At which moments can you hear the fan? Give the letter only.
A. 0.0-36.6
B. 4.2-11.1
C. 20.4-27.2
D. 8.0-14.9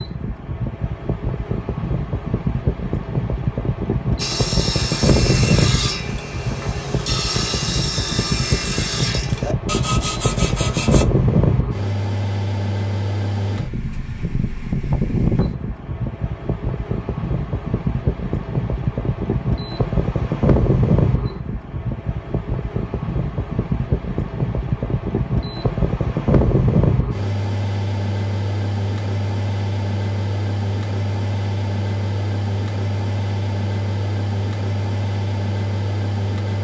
A.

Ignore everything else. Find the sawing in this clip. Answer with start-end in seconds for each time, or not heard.
4.2-11.1.